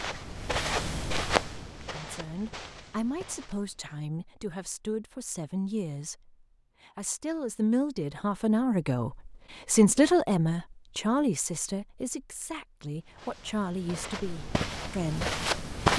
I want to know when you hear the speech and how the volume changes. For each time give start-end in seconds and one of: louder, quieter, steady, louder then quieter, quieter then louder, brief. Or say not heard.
1.9-15.9 louder then quieter.